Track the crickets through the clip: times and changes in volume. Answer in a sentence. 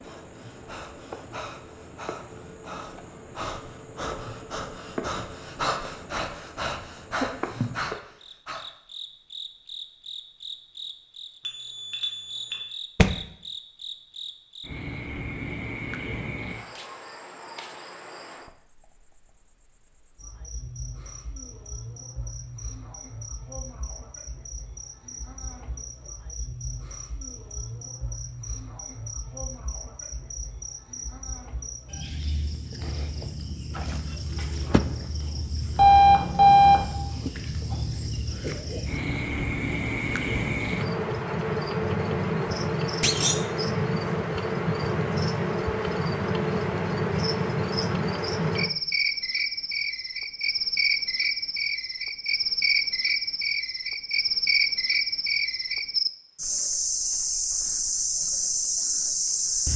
You can hear the crickets from 0.0 to 59.7 s, getting louder.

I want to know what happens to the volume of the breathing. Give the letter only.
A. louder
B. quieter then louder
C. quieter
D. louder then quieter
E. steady
A.